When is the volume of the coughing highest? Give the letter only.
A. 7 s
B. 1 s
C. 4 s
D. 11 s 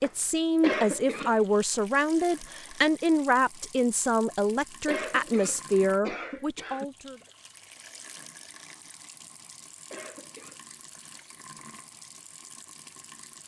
B.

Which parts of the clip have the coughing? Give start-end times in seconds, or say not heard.
0.6-1.4, 4.8-6.8, 9.9-10.6.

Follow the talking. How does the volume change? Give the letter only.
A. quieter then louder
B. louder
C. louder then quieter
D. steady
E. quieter
D.